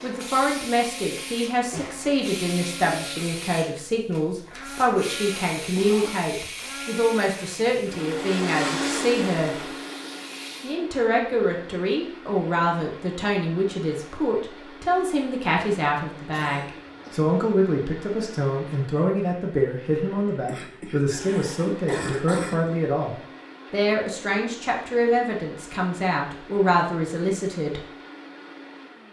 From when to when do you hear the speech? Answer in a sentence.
You can hear the speech from 0.0 to 9.8 s and from 10.6 to 27.9 s.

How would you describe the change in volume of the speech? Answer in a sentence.
The loudness of the speech stays about the same.